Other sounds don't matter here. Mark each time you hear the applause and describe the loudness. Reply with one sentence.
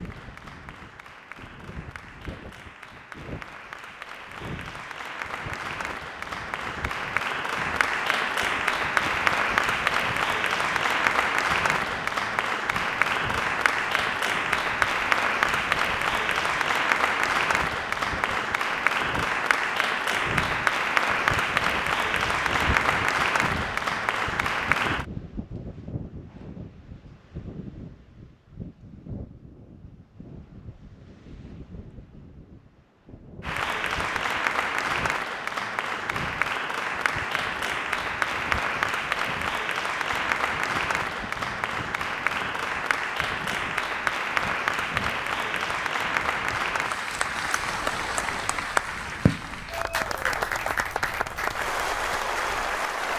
The applause can be heard from 0.0 to 25.1 s, getting louder; and from 33.4 to 53.1 s, at a steady volume.